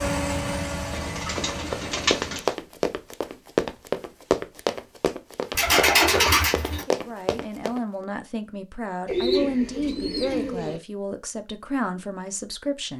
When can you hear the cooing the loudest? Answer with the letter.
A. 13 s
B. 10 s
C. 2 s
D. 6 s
D.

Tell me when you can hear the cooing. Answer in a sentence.
You can hear the cooing from 0.9 to 2.4 s, from 5.5 to 6.8 s and from 9.1 to 10.8 s.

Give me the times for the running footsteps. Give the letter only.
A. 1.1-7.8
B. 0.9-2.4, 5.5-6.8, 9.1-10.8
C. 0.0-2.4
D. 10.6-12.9
A.